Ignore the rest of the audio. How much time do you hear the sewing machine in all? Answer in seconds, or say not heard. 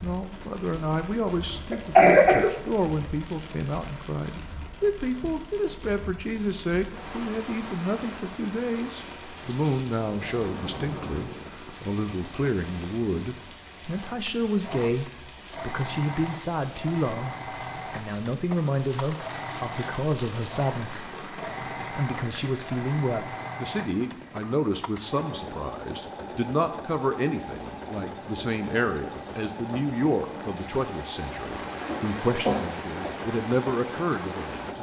21 s.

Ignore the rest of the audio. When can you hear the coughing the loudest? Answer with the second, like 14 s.
2 s.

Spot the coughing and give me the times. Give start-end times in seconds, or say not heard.
1.7-2.5, 31.9-33.1.